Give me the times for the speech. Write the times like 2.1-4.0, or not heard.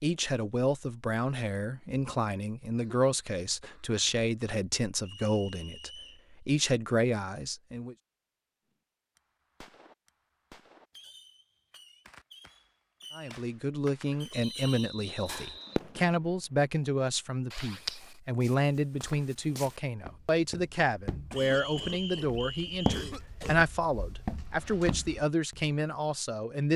0.0-8.0, 13.2-26.7.